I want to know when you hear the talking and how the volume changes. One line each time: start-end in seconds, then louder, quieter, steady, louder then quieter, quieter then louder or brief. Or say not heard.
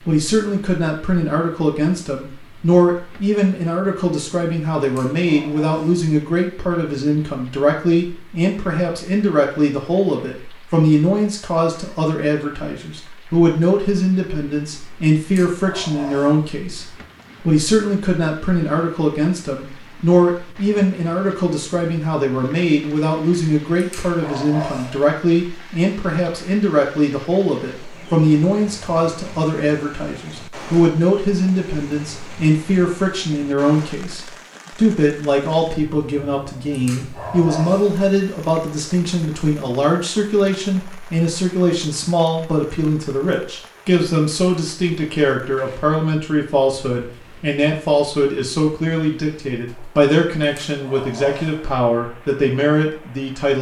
0.1-53.5 steady.